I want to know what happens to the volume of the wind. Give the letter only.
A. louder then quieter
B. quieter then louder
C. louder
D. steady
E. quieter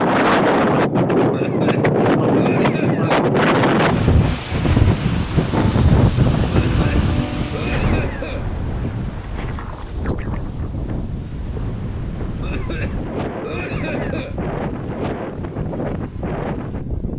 E.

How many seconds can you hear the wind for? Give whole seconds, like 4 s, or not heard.
17 s.